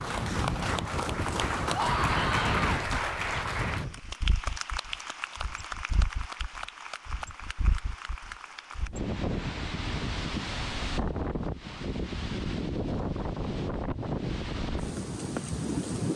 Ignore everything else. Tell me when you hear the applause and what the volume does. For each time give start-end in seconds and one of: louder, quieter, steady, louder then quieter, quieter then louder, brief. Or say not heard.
0.0-8.9 quieter.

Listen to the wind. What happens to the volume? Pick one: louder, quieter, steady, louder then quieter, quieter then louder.
quieter then louder.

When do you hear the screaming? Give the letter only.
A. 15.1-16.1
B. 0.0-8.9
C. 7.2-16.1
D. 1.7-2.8
D.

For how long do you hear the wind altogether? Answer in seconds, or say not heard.
16 s.